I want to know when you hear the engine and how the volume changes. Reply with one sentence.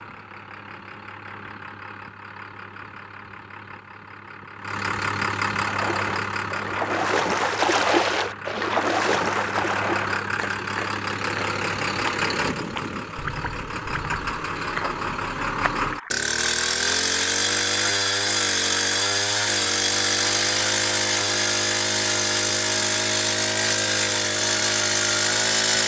You can hear the engine from 0.0 to 25.8 s, getting louder.